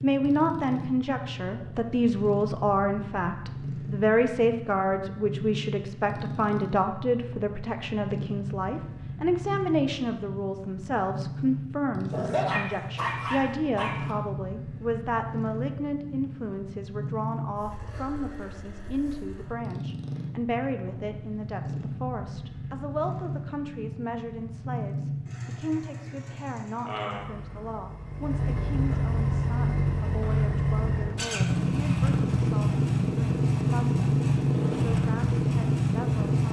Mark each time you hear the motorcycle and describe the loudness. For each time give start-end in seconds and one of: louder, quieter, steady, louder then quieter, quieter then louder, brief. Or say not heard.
0.0-36.4 louder.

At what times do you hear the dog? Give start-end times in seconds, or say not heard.
12.1-14.2.